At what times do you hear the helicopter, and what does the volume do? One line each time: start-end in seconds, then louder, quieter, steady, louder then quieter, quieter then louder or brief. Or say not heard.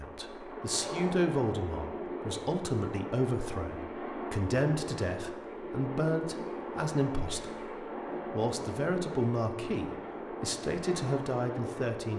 0.0-12.1 steady.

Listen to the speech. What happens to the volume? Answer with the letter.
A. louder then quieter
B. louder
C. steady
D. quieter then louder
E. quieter
C.